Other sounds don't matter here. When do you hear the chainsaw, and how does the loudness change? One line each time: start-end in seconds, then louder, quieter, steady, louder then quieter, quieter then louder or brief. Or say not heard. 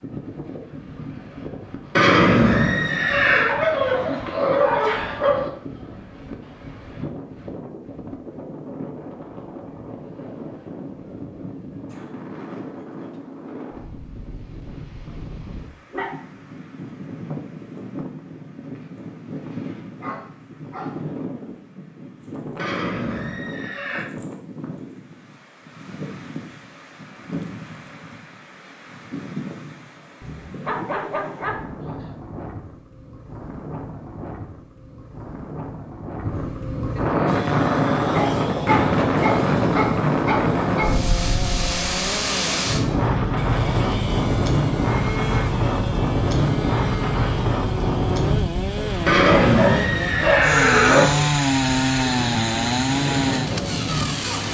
37.2-54.5 louder.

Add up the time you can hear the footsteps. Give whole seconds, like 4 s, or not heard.
not heard.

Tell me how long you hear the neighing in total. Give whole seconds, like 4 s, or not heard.
5 s.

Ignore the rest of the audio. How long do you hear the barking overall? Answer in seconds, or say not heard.
11 s.